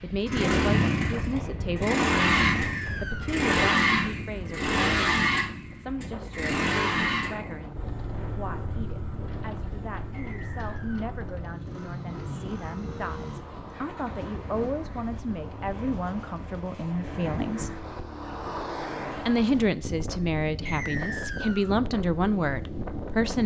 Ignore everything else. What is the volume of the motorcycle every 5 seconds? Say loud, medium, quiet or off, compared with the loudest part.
loud, medium, quiet, quiet, quiet.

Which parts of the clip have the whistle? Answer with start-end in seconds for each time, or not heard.
2.5-3.4, 10.1-11.1, 20.6-21.8.